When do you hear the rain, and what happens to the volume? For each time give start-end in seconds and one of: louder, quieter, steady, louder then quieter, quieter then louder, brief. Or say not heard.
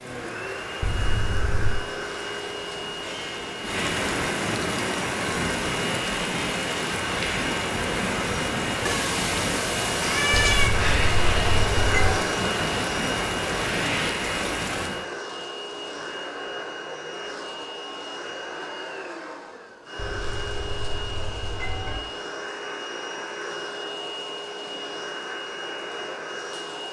0.0-15.1 louder.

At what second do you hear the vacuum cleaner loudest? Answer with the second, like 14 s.
12 s.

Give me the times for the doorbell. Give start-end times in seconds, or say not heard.
0.8-1.8, 10.3-12.2, 19.9-22.0.